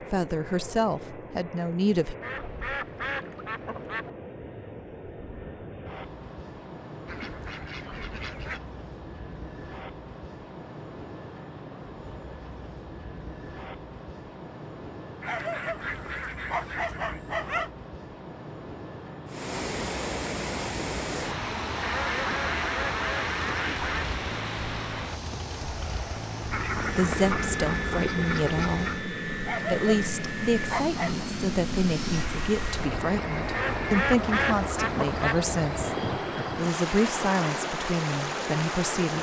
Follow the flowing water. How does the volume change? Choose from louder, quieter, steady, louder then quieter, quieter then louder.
quieter then louder.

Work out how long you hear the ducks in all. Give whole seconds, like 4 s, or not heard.
12 s.